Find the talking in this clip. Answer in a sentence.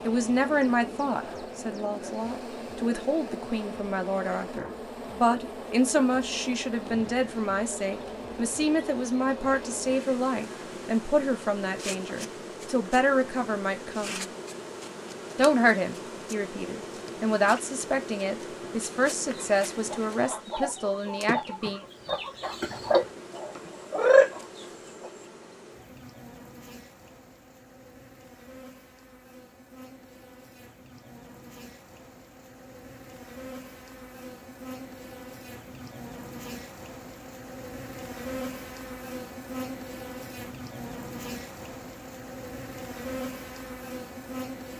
The talking can be heard from 0.1 to 14.3 s and from 15.3 to 21.8 s.